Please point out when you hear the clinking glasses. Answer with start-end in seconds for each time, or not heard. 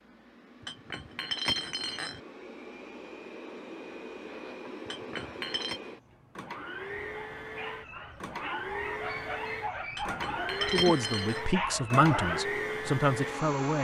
0.6-2.2, 4.8-5.8, 9.9-11.4.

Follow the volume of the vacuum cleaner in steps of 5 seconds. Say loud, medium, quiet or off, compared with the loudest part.
medium, medium, loud.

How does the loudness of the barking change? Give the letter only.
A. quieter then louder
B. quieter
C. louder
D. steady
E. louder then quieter
C.